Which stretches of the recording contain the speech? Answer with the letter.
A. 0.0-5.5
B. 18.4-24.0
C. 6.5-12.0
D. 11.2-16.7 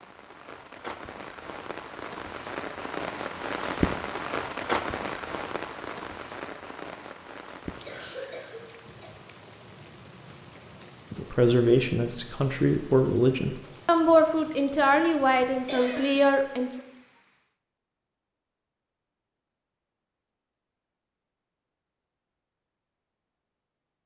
D.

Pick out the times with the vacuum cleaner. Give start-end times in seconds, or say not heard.
not heard.